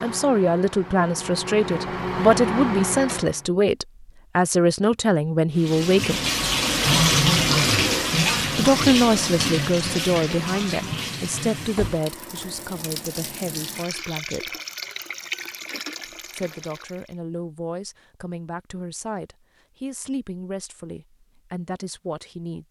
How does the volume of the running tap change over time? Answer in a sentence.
The volume of the running tap goes down.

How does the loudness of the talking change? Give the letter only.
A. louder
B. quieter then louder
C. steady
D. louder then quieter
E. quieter
E.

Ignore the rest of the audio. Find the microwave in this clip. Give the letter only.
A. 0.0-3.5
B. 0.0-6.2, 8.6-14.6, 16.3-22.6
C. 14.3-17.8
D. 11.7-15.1
A.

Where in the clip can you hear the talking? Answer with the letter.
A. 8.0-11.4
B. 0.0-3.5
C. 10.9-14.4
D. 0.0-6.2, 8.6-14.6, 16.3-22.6
D.